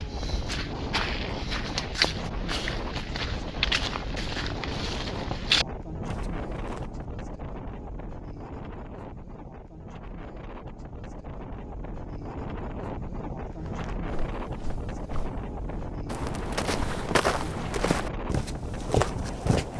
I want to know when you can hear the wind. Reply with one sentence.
You can hear the wind from 0.0 to 19.7 s.